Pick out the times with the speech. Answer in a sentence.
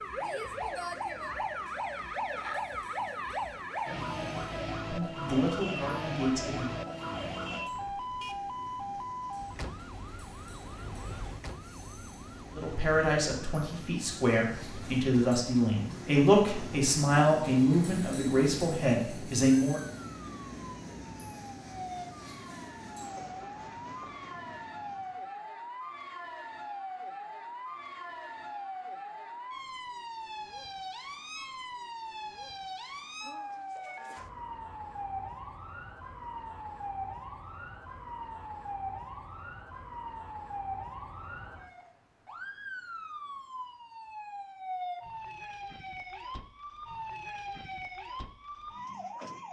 The speech can be heard from 4.9 to 6.7 s and from 12.6 to 19.8 s.